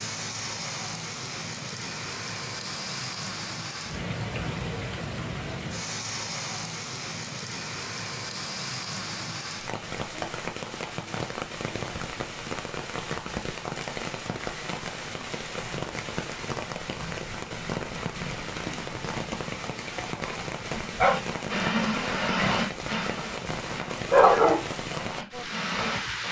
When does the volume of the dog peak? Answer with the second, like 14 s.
24 s.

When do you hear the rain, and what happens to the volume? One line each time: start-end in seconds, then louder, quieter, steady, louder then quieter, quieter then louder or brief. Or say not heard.
0.0-26.2 steady.